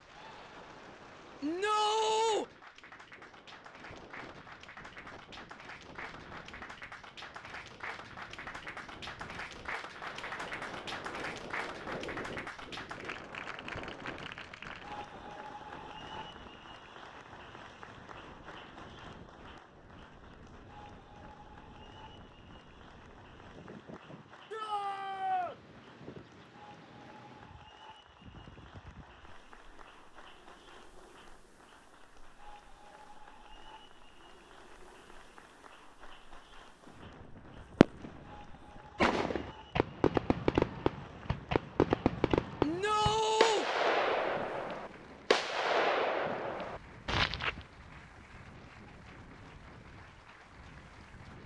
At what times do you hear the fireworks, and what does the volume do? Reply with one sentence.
You can hear the fireworks from 37.3 to 47.6 s, at a steady volume.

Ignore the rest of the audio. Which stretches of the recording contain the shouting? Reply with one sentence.
You can hear the shouting from 1.4 to 2.5 s, from 24.5 to 25.6 s and from 42.6 to 43.6 s.